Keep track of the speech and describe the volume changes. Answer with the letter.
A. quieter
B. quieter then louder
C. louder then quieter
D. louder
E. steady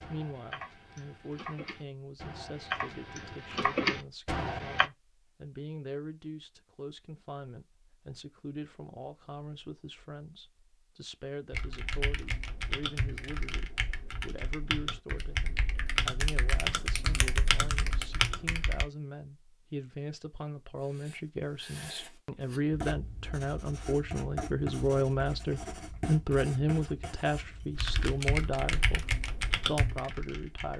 D.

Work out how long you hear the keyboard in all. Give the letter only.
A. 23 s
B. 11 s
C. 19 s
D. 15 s
D.